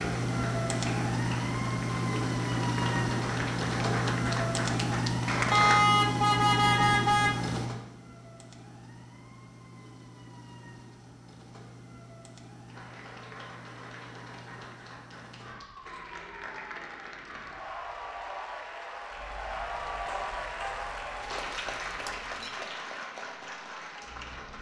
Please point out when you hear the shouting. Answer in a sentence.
You can't hear the shouting here.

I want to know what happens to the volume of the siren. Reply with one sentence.
The loudness of the siren goes down.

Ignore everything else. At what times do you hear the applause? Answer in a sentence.
The applause can be heard from 0.0 to 5.8 s and from 12.7 to 24.5 s.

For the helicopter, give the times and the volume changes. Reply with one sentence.
You can't hear the helicopter here.